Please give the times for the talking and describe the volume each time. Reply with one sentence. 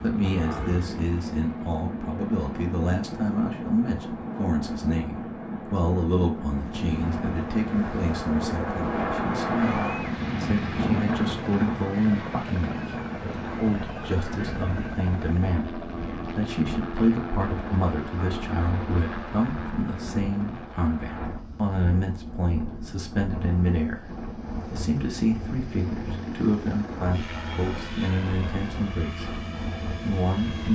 You can hear the talking from 0.0 to 29.4 s, at a steady volume; and briefly from 30.0 to 30.7 s.